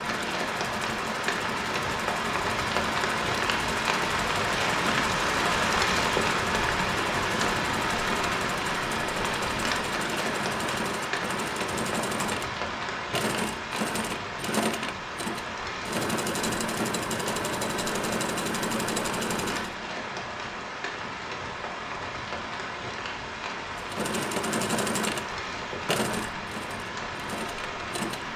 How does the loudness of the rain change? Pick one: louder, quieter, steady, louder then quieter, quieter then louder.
quieter.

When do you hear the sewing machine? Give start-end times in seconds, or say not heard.
0.0-19.8, 23.8-28.3.